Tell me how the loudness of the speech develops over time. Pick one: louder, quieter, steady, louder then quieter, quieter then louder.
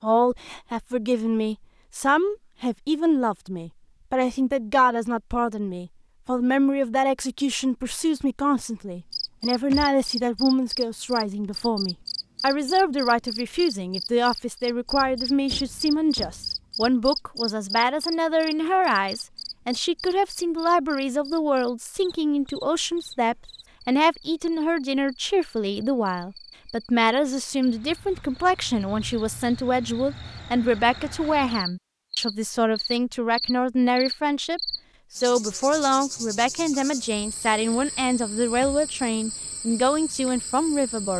steady.